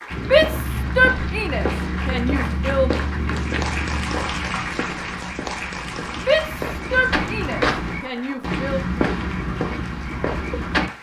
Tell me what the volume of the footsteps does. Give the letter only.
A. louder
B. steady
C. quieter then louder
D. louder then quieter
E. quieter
C.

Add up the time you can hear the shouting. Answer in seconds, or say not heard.
5 s.